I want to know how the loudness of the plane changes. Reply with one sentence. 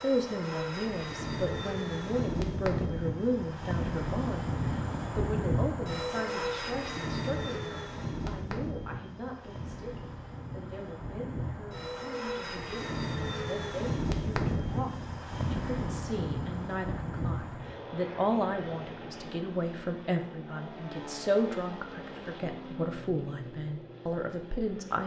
The loudness of the plane goes down.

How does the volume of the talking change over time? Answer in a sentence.
The volume of the talking goes down, then up.